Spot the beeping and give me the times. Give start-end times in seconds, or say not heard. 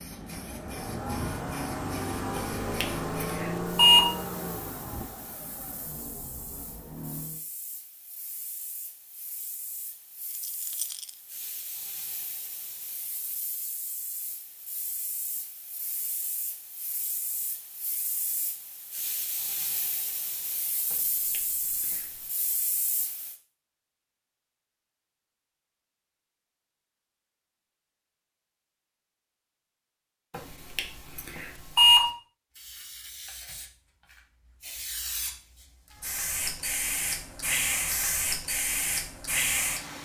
2.4-4.0, 20.9-22.1, 30.3-32.0.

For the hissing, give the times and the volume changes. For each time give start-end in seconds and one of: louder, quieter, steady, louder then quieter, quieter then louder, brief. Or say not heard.
0.0-23.4 quieter then louder
32.5-40.0 louder.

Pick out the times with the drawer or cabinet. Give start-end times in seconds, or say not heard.
not heard.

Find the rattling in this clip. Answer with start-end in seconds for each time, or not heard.
10.2-11.2.